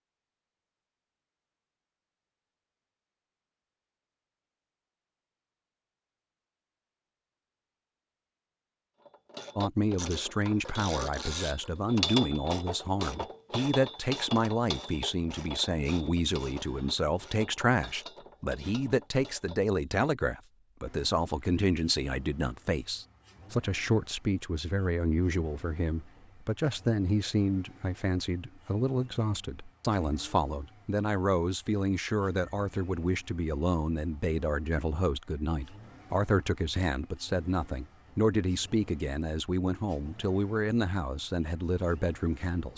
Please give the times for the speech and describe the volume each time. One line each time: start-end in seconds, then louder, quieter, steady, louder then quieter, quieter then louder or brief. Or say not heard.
9.6-42.7 steady.